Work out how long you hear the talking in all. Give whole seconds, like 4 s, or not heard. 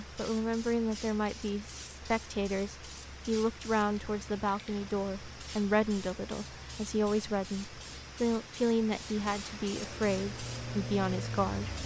12 s.